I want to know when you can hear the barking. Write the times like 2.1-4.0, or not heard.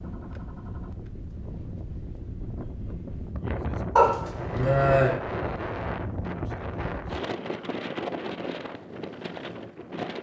4.0-5.1.